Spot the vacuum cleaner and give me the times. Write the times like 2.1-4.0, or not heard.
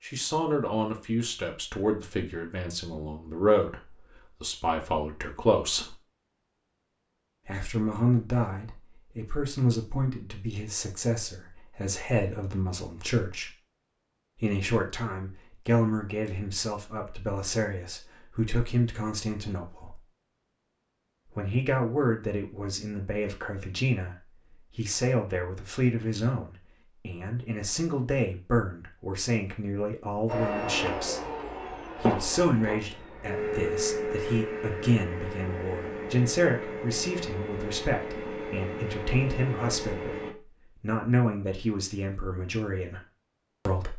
30.2-40.4.